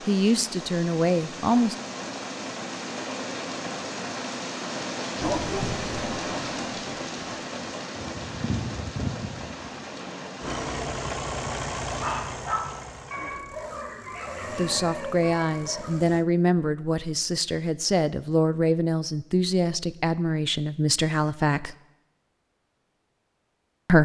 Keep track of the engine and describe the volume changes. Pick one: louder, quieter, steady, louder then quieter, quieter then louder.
quieter.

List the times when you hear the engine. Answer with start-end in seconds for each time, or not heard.
10.4-16.2.